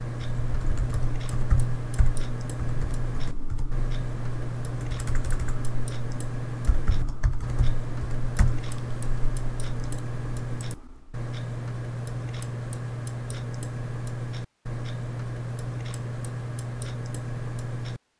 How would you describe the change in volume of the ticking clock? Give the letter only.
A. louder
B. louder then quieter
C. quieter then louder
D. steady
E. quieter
D.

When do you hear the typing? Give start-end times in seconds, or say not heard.
0.4-11.2.